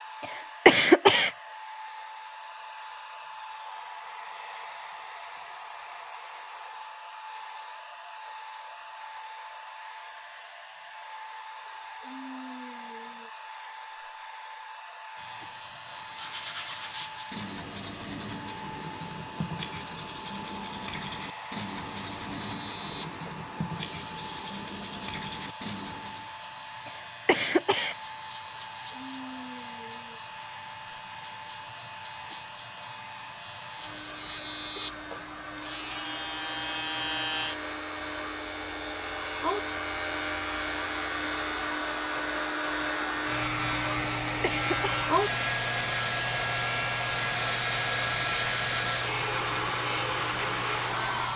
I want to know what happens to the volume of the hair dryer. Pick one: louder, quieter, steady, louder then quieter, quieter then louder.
louder.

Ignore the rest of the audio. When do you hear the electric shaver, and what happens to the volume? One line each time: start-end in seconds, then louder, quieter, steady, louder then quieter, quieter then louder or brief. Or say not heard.
15.2-51.3 louder.